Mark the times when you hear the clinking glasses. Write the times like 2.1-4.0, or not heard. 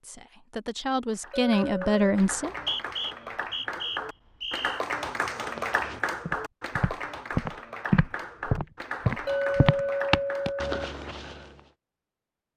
1.3-2.0, 9.2-10.9.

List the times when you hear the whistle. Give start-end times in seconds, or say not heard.
2.4-4.8.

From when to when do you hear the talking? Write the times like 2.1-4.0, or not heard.
0.0-2.5.